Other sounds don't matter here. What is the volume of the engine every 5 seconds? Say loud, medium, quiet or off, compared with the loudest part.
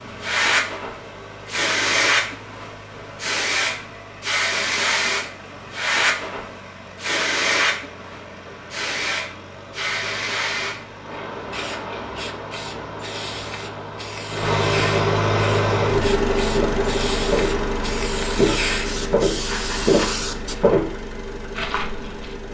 quiet, quiet, medium, loud, medium.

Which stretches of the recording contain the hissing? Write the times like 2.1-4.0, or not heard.
0.0-20.6.